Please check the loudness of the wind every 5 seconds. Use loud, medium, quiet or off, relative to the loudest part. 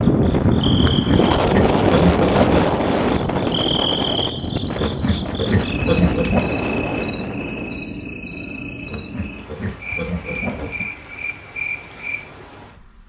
loud, medium, off.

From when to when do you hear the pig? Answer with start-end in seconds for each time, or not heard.
0.8-2.8, 4.8-6.6, 8.8-10.8.